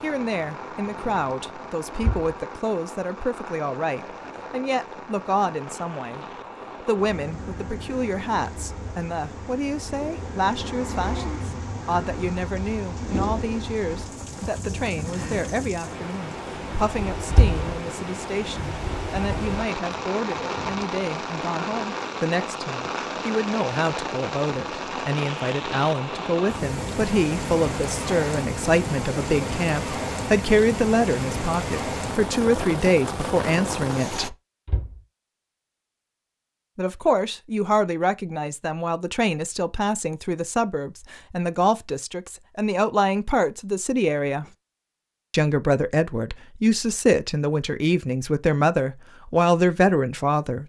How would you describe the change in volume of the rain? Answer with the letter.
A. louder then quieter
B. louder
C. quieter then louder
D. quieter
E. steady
B.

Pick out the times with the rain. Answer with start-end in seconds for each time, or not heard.
0.0-34.3.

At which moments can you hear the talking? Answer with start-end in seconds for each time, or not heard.
0.0-6.2, 6.8-34.4, 36.8-44.5, 45.3-50.6.